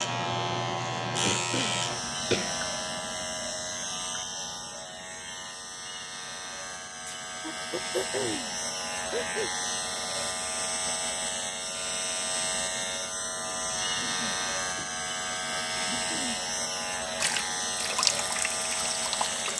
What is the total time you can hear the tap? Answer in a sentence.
You can hear the tap for 2 seconds altogether.